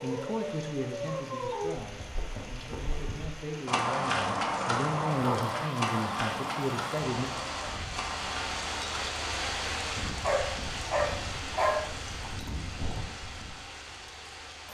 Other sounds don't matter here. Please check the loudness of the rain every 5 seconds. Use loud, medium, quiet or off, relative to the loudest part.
medium, loud, loud.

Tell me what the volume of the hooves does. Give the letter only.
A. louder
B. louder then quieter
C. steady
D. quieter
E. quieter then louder
D.